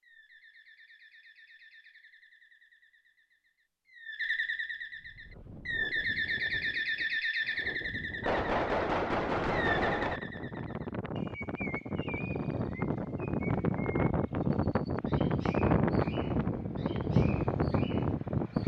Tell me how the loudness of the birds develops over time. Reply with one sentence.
The volume of the birds goes up, then down.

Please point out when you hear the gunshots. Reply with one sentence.
The gunshots can be heard from 8.2 to 10.2 s.